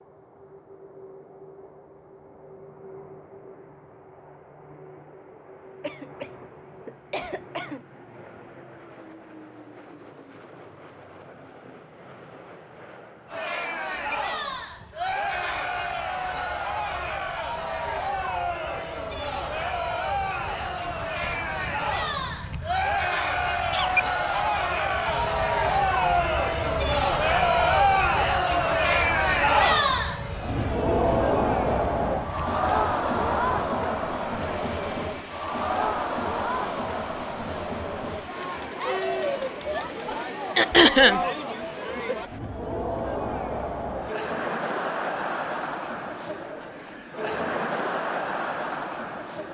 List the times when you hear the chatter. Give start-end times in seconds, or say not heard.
13.2-49.4.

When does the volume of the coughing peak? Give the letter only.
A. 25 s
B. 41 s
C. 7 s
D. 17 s
B.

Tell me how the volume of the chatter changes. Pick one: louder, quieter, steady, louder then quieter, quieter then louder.
louder then quieter.